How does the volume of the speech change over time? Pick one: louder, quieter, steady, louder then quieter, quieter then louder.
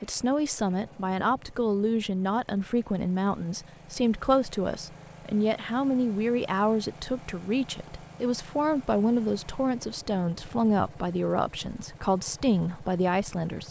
steady.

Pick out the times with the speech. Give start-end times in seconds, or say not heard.
0.0-13.6.